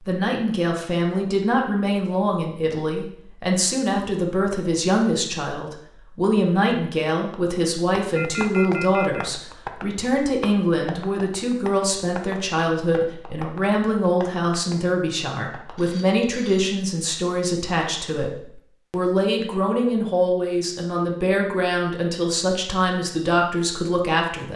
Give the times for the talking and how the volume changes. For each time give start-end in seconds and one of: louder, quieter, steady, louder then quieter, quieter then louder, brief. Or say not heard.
0.1-24.5 steady.